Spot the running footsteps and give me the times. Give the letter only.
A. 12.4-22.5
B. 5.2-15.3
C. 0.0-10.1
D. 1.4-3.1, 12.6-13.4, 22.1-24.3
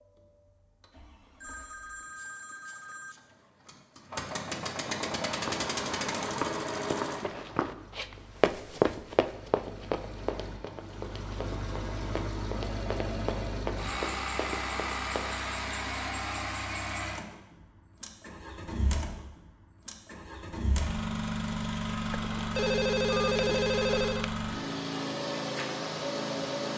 B.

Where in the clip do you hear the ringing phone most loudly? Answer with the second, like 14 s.
23 s.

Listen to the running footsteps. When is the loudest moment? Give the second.
9 s.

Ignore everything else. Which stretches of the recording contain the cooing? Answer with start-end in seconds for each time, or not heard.
not heard.